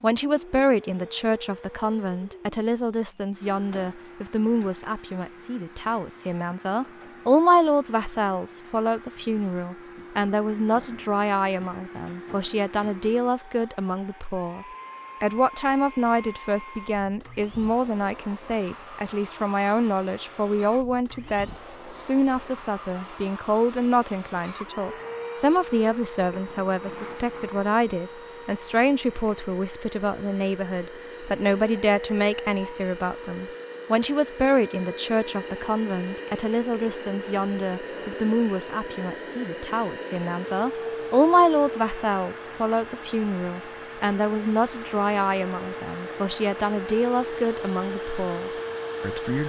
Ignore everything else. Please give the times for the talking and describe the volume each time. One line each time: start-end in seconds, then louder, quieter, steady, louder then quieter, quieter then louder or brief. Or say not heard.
0.0-49.4 steady.